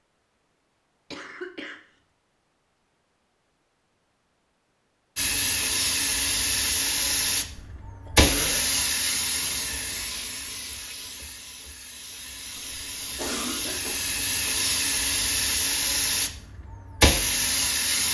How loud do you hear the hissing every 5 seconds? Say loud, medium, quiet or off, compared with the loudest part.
off, loud, medium, loud.